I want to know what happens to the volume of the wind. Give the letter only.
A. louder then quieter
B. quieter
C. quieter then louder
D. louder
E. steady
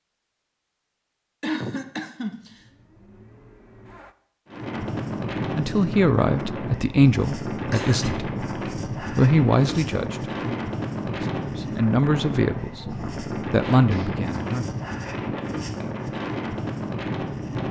E.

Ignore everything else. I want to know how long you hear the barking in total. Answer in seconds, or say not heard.
not heard.